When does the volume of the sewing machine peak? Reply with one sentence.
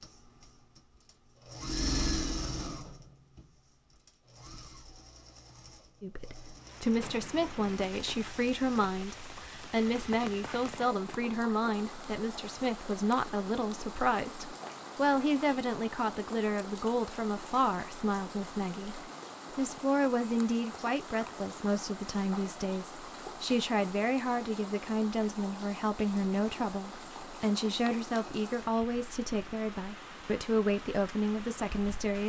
The volume of the sewing machine peaks at 2 seconds.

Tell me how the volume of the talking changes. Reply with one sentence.
The volume of the talking stays about the same.